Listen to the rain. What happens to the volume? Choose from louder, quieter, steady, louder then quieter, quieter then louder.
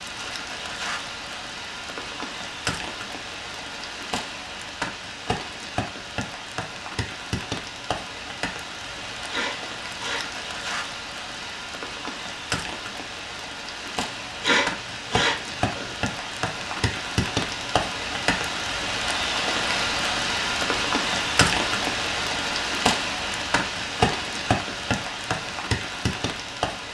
louder.